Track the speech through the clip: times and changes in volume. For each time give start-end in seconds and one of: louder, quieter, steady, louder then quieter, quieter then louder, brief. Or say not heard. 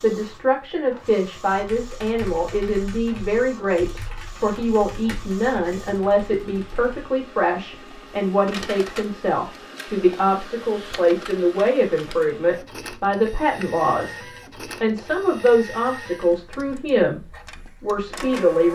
0.0-17.2 steady
17.8-18.6 brief.